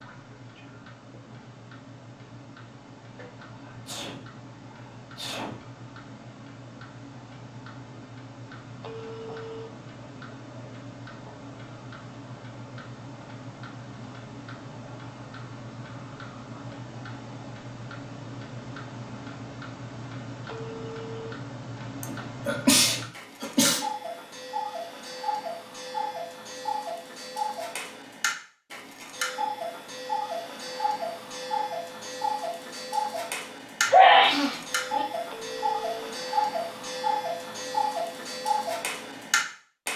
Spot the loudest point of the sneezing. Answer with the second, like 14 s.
34 s.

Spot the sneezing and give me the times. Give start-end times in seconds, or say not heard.
3.5-5.6, 22.0-23.9, 33.9-35.0.